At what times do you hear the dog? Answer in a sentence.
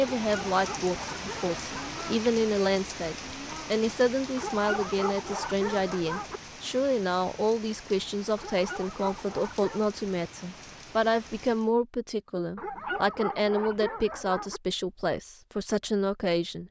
The dog can be heard from 0.0 to 2.0 s, from 4.3 to 6.4 s, from 8.3 to 9.9 s and from 12.6 to 14.6 s.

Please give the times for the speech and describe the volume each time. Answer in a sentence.
You can hear the speech from 0.0 to 16.6 s, at a steady volume.